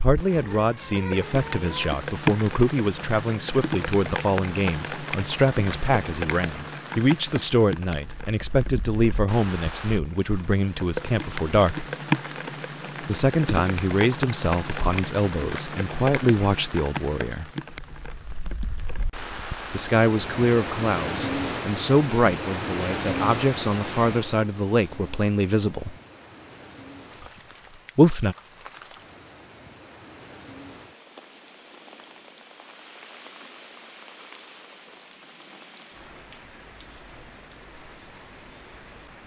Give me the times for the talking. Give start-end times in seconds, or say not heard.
0.0-11.8, 13.1-17.5, 19.7-25.9, 27.9-28.4.